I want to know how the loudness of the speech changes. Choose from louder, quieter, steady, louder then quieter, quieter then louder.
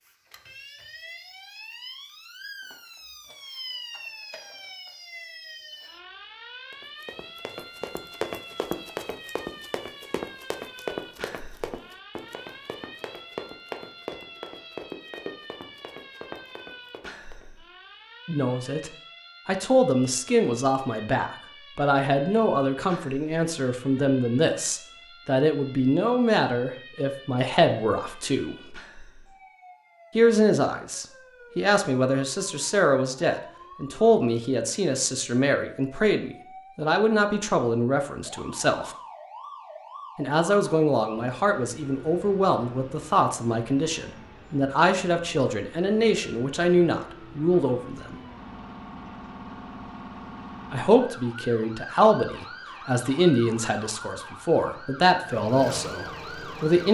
steady.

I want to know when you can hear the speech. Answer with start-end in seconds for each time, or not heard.
18.2-28.8, 30.1-39.0, 40.1-48.1, 50.7-56.8.